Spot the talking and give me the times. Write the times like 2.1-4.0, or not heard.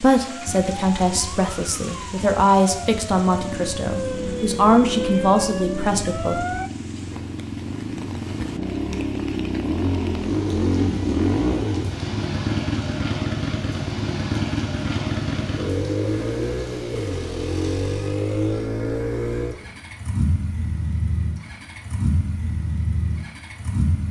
0.0-6.4.